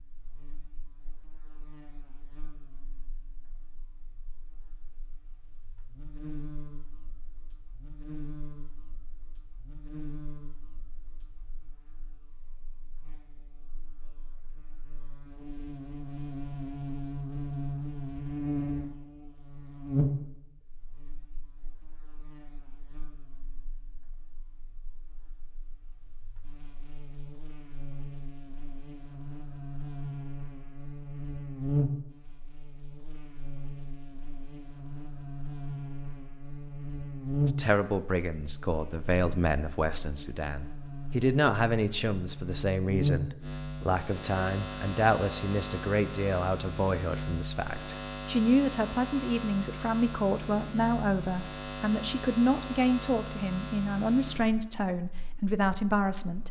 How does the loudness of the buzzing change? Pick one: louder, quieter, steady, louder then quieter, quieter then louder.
louder.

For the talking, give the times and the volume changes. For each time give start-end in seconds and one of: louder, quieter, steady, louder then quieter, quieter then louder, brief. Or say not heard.
37.5-56.4 steady.